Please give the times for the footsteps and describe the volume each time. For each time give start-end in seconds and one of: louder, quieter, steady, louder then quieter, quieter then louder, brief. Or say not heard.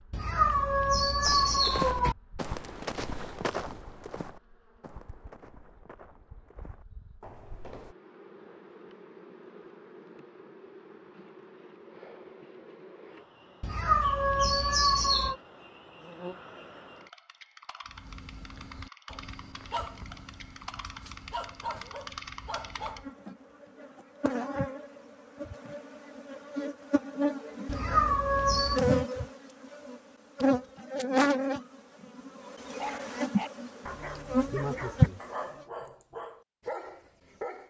1.2-8.0 quieter.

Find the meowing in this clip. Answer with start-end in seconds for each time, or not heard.
0.1-2.1, 13.6-15.3, 27.6-28.8.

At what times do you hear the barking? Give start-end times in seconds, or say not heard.
17.9-23.1, 32.8-37.6.